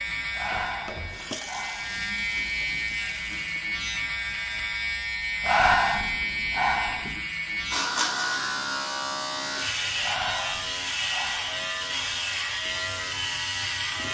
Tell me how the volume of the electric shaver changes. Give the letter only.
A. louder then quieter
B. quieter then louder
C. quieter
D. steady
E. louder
D.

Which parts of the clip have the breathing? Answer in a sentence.
You can hear the breathing from 0.3 to 2.6 s, from 5.4 to 7.2 s and from 10.0 to 11.7 s.